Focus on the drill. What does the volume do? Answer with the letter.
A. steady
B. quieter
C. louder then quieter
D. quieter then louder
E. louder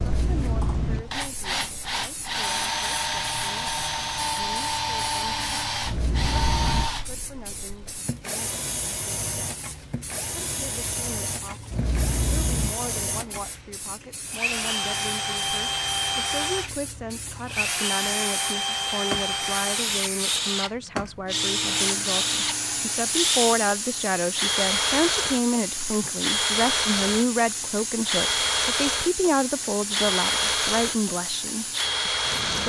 D.